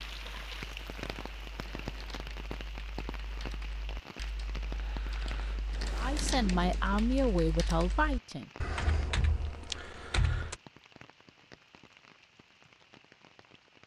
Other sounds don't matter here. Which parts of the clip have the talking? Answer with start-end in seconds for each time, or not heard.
6.0-8.5.